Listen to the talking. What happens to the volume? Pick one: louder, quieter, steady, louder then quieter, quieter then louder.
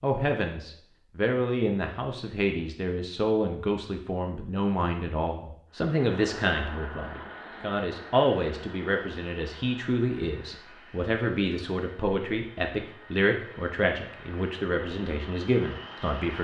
steady.